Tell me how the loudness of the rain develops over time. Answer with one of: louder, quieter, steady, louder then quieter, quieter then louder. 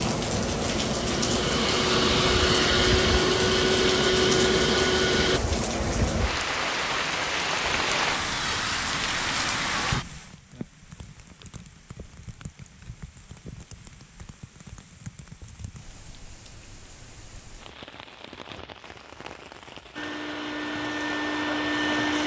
quieter.